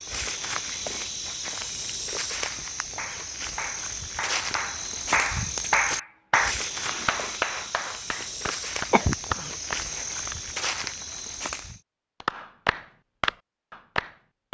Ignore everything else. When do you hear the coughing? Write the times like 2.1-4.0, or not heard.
8.2-9.6.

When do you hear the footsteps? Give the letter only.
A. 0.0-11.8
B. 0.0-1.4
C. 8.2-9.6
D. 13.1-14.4
A.